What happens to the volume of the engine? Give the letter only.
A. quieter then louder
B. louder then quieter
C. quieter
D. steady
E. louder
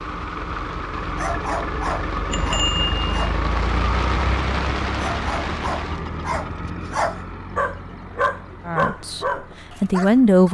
C.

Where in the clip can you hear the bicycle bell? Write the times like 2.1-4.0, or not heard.
2.3-3.4.